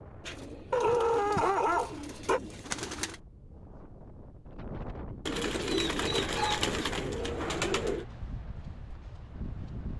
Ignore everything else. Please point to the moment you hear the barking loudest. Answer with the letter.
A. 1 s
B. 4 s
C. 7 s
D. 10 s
A.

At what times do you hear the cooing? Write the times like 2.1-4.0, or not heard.
0.2-3.2, 5.2-8.1.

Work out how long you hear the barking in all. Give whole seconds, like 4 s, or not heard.
3 s.